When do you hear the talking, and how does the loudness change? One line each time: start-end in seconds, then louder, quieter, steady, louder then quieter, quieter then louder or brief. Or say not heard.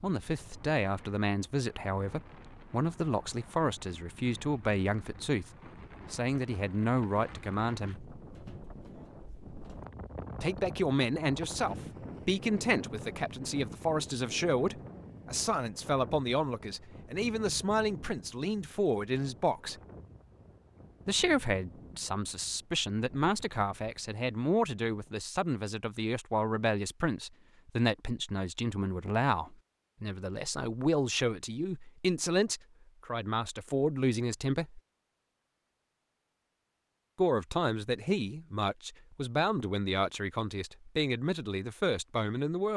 0.0-5.5 steady
6.1-8.1 brief
10.4-19.8 steady
21.1-34.8 steady
37.1-42.7 steady.